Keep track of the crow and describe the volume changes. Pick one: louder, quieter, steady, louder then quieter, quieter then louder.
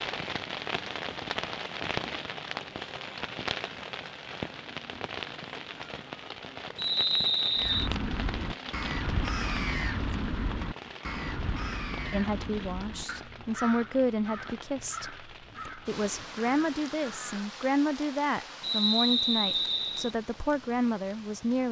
quieter.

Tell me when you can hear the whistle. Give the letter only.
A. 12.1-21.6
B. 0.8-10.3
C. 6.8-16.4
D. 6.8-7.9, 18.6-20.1
D.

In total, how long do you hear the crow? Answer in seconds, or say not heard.
10 s.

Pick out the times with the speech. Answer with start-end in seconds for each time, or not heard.
12.1-21.6.